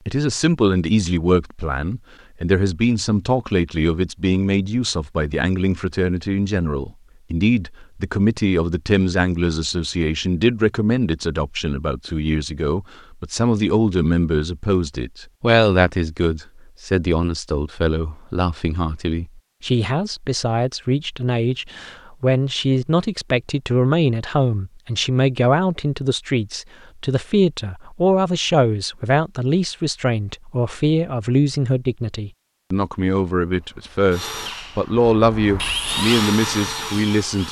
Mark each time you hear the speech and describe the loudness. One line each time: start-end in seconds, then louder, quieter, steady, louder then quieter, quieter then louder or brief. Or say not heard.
0.1-37.4 steady.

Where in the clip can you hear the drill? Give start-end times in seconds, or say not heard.
33.5-37.4.